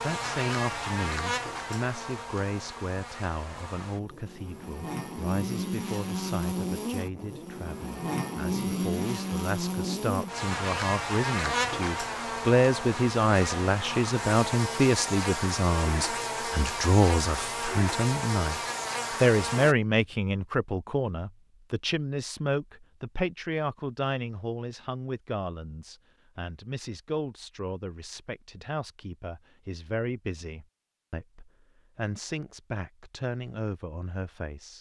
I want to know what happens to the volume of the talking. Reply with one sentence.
The volume of the talking goes up, then down.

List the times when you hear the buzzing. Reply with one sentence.
You can hear the buzzing from 0.0 to 19.8 s.